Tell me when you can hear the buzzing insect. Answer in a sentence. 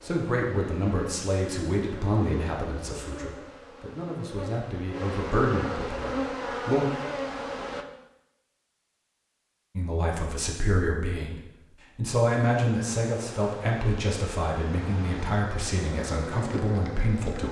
The buzzing insect can be heard from 0.0 to 7.8 s and from 12.7 to 17.4 s.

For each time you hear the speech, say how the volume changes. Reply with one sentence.
The speech can be heard from 0.0 to 6.8 s, getting quieter then louder; and from 9.8 to 17.4 s, getting louder then quieter.